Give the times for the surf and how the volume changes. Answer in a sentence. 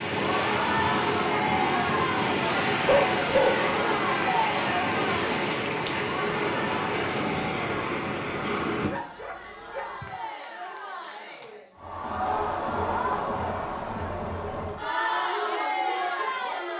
You can hear the surf from 0.0 to 8.9 s, at a steady volume.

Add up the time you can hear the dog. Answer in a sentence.
The dog can be heard for 2 seconds in total.